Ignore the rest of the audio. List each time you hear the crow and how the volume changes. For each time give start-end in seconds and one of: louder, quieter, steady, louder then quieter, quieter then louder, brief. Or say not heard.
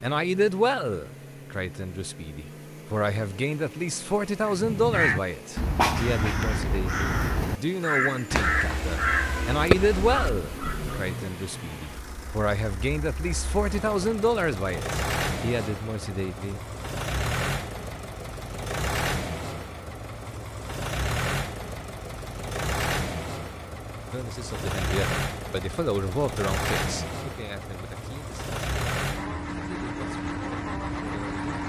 4.5-10.9 quieter.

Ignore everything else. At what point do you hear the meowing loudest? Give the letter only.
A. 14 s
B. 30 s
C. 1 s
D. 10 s
D.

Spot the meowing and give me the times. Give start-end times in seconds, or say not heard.
8.3-10.3.